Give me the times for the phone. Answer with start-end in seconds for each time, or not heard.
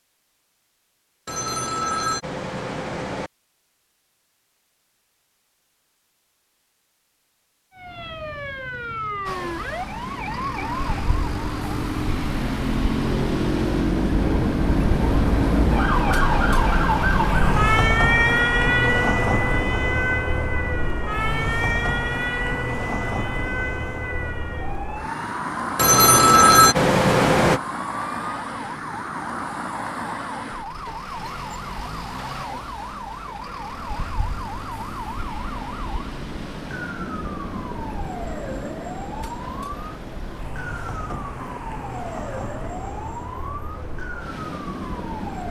1.2-3.3, 25.8-27.6.